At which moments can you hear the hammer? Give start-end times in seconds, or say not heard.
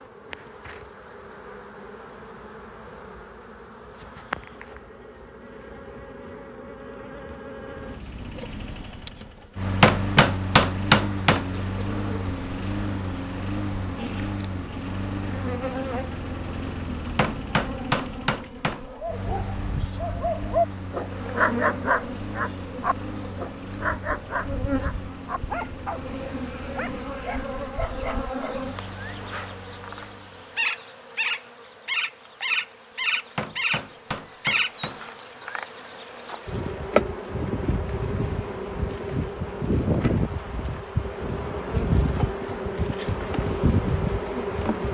9.8-11.4, 17.1-18.9, 33.4-35.0.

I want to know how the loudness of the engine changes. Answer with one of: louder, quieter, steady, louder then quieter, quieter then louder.
quieter.